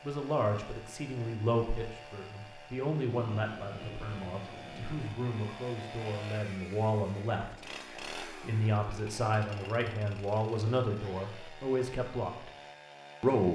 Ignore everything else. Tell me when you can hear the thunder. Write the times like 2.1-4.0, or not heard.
3.3-5.0.